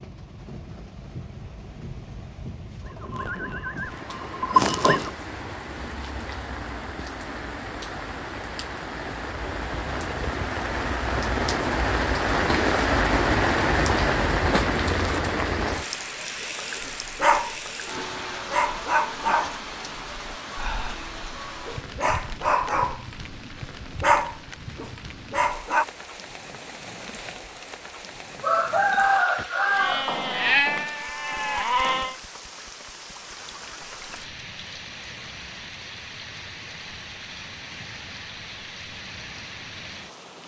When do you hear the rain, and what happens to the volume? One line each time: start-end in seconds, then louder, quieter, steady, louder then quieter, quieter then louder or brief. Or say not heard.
0.0-40.4 louder then quieter.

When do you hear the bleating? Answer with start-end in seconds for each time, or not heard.
2.8-5.1, 29.7-32.1.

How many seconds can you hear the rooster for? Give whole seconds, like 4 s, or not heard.
2 s.